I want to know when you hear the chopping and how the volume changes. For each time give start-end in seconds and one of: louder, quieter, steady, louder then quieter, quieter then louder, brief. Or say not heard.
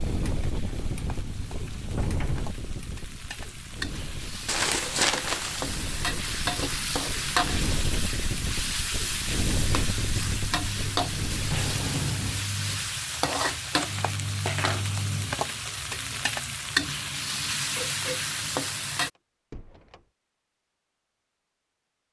not heard.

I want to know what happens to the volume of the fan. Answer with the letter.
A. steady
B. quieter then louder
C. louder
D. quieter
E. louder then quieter
B.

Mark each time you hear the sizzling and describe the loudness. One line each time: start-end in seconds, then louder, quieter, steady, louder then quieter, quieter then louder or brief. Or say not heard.
0.0-19.1 louder.